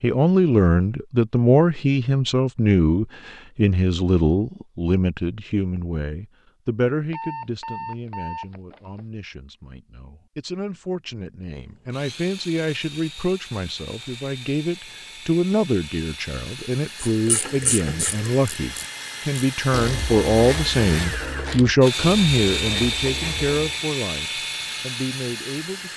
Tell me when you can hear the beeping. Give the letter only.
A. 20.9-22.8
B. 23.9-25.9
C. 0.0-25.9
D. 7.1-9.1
D.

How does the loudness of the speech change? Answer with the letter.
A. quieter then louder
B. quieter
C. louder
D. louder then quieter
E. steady
A.